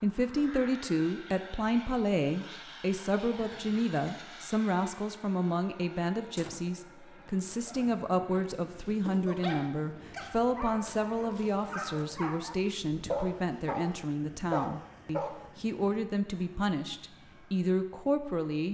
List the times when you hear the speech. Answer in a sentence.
You can hear the speech from 0.0 to 18.6 s.